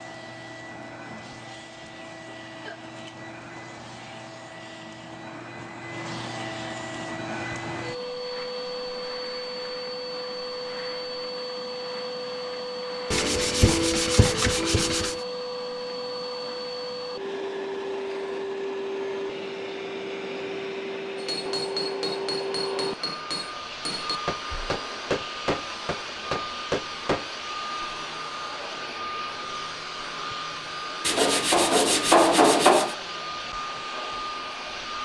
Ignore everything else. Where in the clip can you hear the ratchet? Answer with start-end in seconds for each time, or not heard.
not heard.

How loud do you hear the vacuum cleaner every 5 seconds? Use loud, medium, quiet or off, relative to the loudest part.
medium, loud, loud, loud, loud, loud, loud.